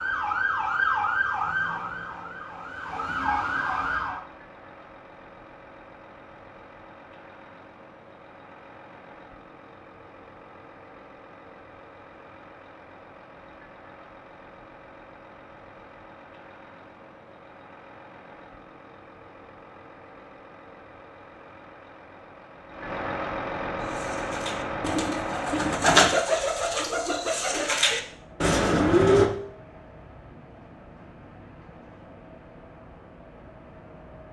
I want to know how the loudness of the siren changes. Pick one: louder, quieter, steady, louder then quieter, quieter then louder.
quieter then louder.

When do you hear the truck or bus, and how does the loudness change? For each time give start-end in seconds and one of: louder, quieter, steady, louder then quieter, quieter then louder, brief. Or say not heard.
0.0-34.2 louder then quieter.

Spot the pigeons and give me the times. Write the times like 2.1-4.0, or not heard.
23.8-29.3.